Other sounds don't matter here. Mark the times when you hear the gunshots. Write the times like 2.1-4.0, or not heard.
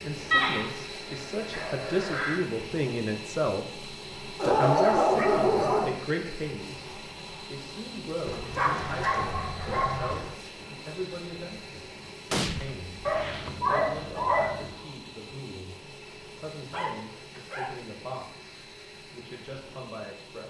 12.3-13.6.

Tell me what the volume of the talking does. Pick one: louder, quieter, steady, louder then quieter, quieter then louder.
quieter.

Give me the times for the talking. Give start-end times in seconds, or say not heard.
0.0-20.4.